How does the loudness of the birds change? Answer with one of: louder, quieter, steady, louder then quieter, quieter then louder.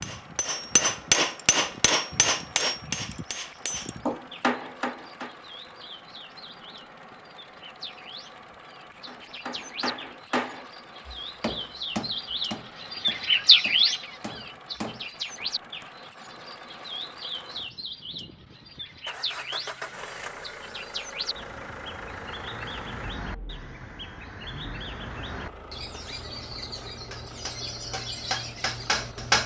louder then quieter.